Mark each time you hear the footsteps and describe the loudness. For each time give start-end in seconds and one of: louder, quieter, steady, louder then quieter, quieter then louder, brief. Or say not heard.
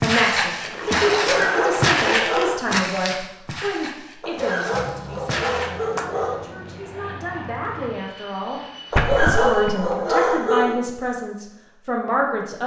0.0-5.7 quieter.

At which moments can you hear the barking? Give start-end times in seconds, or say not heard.
1.1-2.6, 4.2-6.5, 8.9-10.8.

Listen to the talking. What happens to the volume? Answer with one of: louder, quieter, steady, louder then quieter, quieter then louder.
quieter then louder.